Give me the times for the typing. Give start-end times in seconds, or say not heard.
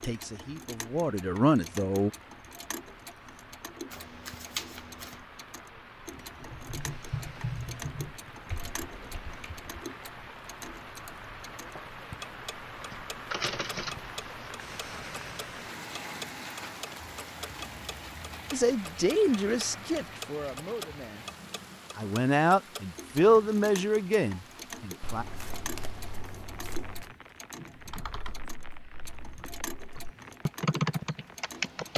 6.4-9.7, 27.8-31.9.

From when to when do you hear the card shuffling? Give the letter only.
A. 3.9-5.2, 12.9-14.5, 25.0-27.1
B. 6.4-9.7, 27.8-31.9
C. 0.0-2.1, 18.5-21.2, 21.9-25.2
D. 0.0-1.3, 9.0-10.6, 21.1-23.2
A.